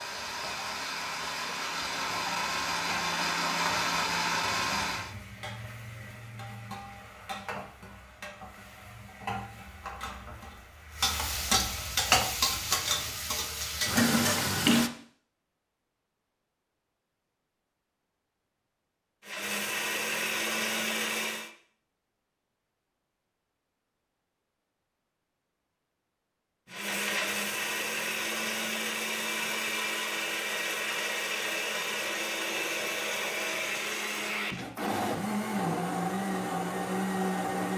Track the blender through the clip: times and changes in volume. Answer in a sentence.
You can hear the blender from 0.0 to 5.2 s, getting louder; briefly from 19.2 to 21.5 s; and from 26.6 to 37.7 s, at a steady volume.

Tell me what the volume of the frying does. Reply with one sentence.
The loudness of the frying goes up.